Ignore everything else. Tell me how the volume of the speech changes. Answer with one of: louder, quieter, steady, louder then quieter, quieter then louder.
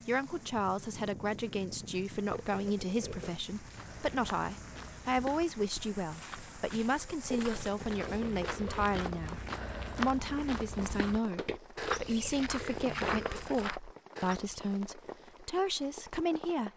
steady.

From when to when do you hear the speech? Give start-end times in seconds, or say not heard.
0.1-16.7.